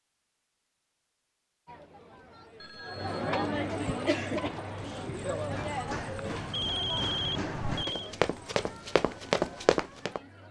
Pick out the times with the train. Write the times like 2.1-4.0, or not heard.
not heard.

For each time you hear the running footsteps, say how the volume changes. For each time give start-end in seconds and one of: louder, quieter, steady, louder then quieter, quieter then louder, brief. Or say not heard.
3.6-10.2 louder.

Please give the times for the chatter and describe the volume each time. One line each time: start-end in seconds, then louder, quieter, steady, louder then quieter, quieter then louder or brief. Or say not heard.
1.6-10.4 quieter.